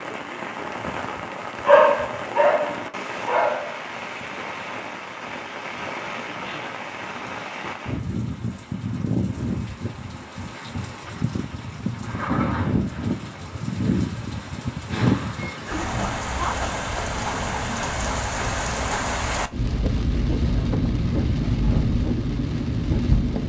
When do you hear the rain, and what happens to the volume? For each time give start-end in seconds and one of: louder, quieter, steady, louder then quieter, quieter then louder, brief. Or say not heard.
0.0-23.4 louder.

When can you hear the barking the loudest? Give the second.
2 s.